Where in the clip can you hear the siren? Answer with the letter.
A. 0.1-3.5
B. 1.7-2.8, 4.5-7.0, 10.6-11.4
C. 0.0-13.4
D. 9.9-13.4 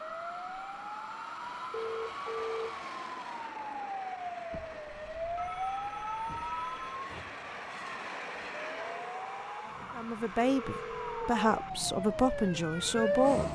C.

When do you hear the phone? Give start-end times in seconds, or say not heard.
1.7-2.8, 4.5-7.0, 10.6-11.4.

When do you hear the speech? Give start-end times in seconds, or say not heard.
9.9-13.4.